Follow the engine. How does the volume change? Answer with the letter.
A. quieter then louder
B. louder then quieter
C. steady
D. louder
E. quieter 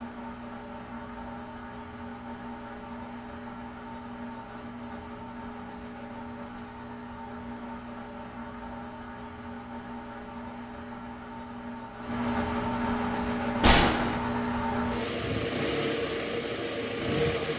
D.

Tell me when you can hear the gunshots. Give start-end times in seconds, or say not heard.
13.6-14.2.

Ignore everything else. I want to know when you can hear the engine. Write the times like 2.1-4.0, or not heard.
0.0-17.5.